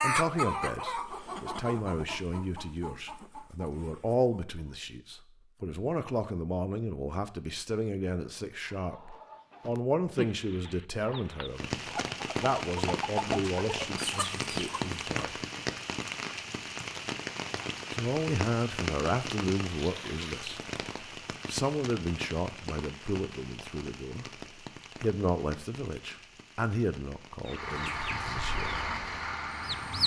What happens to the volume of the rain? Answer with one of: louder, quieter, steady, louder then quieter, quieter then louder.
quieter.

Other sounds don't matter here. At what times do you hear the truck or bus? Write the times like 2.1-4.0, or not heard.
27.4-30.0.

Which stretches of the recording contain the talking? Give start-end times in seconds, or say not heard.
0.0-15.4, 17.9-20.6, 21.4-24.3, 25.0-28.8.